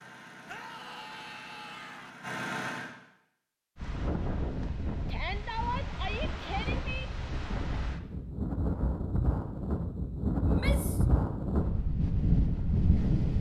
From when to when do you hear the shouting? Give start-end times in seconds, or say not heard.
0.5-2.1, 5.0-7.0, 10.4-11.1.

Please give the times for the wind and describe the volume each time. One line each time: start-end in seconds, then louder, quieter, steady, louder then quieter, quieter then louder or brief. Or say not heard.
3.8-13.3 louder.